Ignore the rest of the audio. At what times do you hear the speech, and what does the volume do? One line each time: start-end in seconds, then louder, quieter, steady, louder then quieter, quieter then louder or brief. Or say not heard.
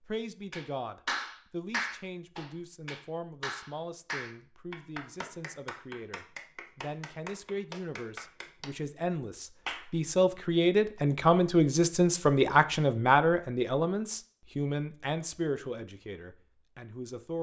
0.0-17.3 louder then quieter.